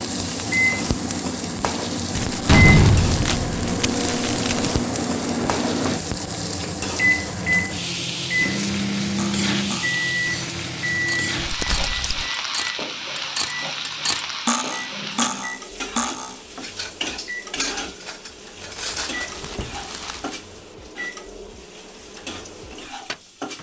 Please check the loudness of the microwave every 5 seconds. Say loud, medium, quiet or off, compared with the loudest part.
loud, loud, medium, quiet, quiet.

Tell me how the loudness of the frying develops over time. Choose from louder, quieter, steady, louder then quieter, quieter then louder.
quieter.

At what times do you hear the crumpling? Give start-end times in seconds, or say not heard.
2.1-4.8, 11.4-12.3, 18.8-20.4.